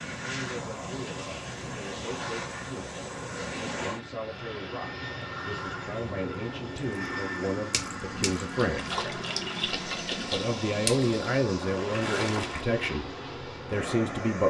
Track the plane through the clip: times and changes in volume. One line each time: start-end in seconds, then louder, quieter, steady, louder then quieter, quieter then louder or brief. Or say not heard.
0.0-14.4 steady.